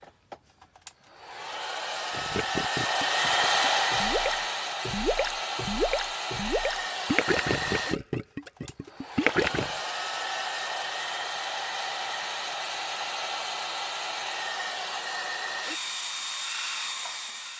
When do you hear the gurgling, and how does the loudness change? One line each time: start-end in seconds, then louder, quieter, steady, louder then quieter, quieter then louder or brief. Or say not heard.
2.1-9.8 louder.